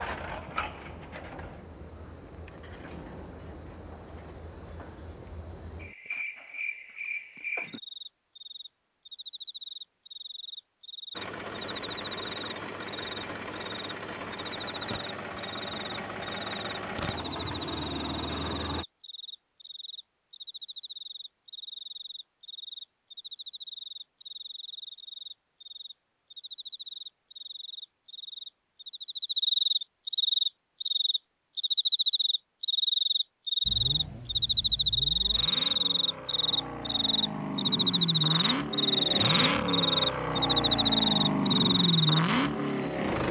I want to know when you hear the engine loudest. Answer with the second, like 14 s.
42 s.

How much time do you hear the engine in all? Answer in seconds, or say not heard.
17 s.